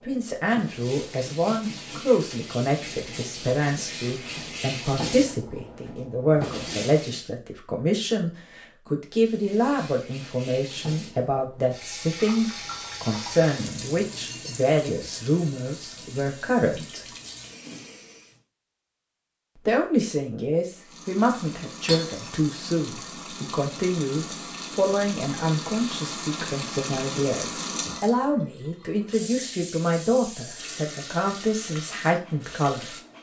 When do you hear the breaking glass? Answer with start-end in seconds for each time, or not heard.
21.9-22.4.